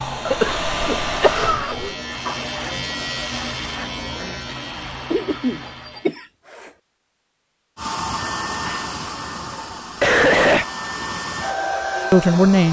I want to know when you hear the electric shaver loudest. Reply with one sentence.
The loudest moment of the electric shaver is at 3 seconds.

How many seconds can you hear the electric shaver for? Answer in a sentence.
You can hear the electric shaver for 6 seconds altogether.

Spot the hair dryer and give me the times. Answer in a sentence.
The hair dryer can be heard from 0.0 to 1.6 s and from 7.8 to 12.6 s.